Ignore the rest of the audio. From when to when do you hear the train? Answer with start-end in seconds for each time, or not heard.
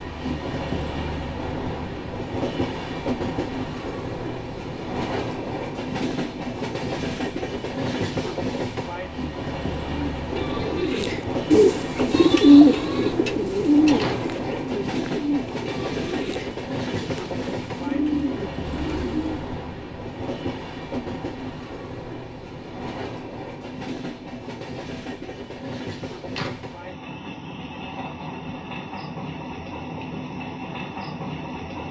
0.0-31.8.